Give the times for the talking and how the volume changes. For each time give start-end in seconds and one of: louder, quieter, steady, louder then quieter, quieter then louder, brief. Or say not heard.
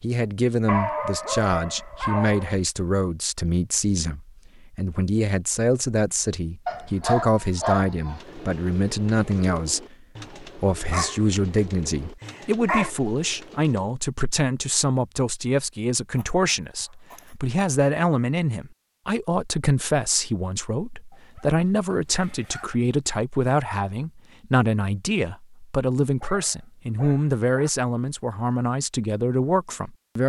0.0-30.2 steady.